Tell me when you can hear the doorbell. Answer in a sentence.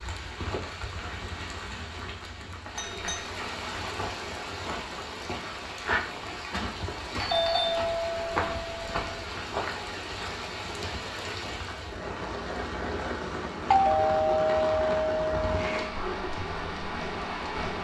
You can hear the doorbell from 2.8 to 3.2 s, from 7.2 to 9.0 s and from 13.2 to 15.9 s.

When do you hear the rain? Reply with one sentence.
You can hear the rain from 0.0 to 17.7 s.